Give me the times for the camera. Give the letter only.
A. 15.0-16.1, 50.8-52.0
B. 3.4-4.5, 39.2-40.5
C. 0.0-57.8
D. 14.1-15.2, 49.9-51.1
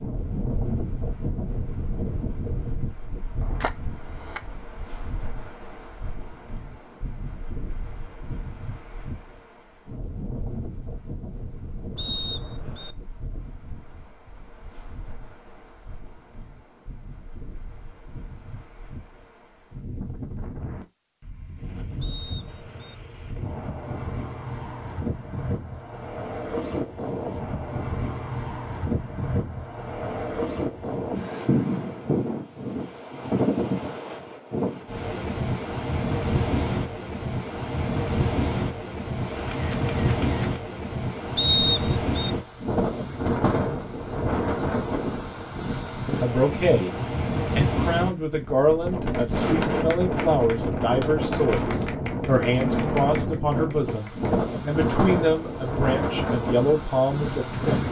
B.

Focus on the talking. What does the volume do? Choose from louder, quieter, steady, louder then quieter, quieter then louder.
steady.